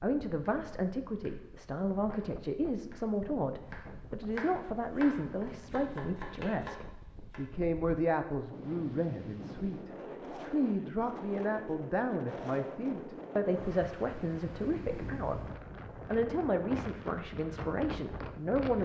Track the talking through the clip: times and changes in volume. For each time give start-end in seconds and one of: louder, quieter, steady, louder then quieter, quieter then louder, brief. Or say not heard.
0.0-15.4 steady
16.1-18.8 brief.